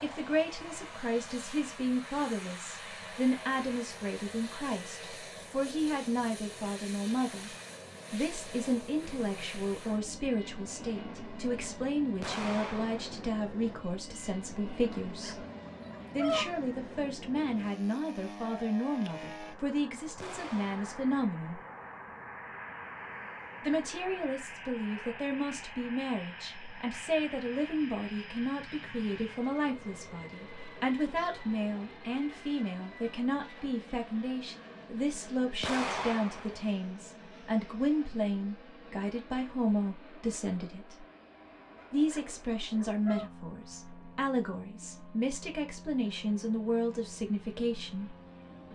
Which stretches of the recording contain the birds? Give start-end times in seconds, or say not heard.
not heard.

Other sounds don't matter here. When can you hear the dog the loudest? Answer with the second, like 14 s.
16 s.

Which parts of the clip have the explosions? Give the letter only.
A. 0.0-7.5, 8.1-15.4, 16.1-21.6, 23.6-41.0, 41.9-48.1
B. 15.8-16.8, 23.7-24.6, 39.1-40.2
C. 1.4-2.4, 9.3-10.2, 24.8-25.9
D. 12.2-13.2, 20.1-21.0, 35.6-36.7
D.